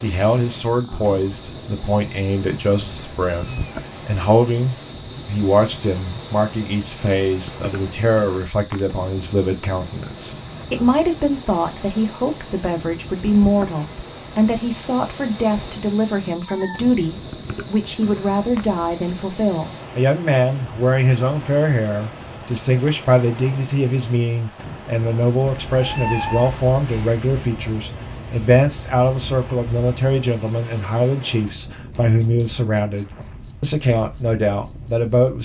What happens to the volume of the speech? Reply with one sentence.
The loudness of the speech stays about the same.